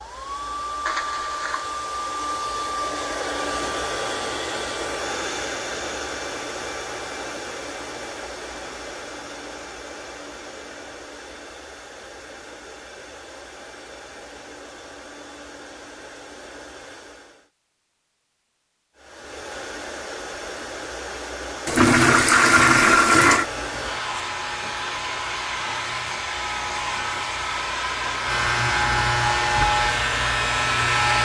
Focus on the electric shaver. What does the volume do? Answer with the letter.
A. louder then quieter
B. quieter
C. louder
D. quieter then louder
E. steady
C.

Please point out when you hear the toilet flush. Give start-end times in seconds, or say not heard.
0.8-1.8, 21.6-23.4.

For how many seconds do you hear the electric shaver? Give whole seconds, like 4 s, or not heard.
8 s.